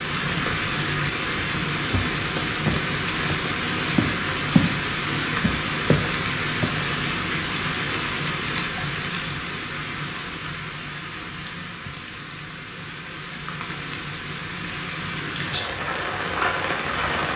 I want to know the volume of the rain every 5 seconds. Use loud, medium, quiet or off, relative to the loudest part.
loud, loud, medium, loud.